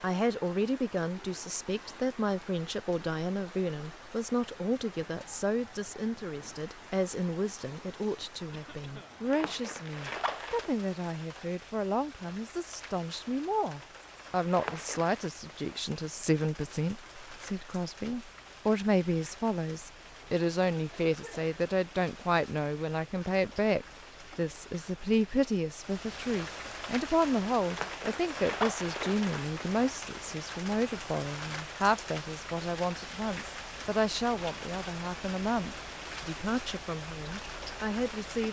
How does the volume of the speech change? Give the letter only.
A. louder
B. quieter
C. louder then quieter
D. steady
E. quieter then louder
D.